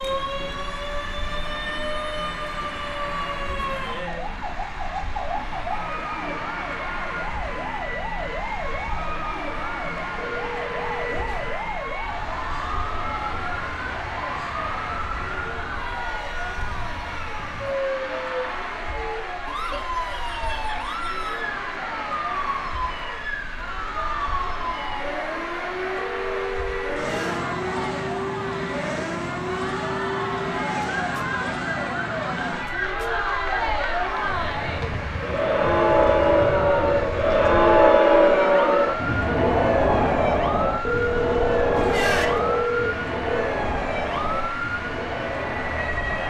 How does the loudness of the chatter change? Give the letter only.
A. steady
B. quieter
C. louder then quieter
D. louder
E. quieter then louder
D.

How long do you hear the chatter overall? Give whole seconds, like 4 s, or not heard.
46 s.